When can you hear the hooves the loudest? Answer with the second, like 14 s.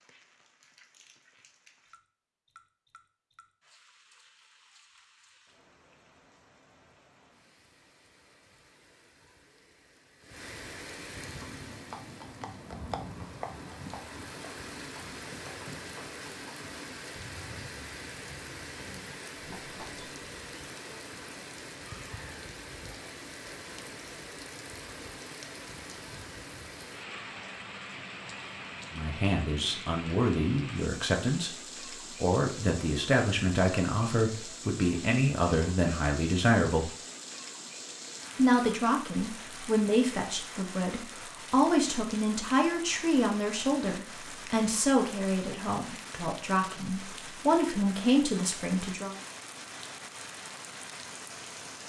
13 s.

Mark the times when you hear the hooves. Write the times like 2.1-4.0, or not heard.
11.2-20.1.